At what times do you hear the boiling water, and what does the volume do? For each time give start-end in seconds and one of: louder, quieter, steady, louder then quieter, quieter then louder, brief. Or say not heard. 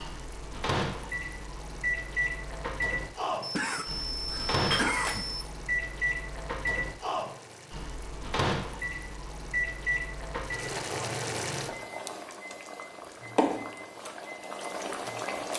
0.0-15.5 louder.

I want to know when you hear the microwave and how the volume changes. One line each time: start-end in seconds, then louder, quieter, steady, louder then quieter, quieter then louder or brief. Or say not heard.
0.0-15.5 quieter.